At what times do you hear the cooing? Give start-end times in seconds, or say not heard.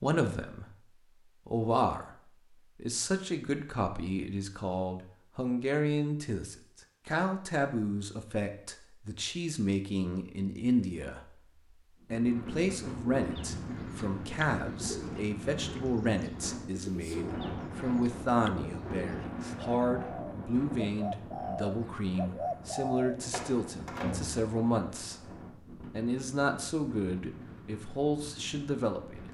13.0-23.6.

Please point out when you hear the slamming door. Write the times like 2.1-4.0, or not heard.
23.3-24.5.